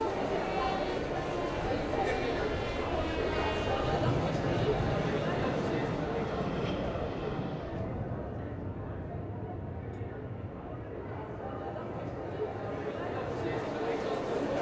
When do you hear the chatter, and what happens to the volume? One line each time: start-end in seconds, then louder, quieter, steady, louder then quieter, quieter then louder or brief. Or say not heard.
0.0-14.5 quieter then louder.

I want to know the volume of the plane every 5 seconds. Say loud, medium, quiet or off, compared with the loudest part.
loud, loud, medium.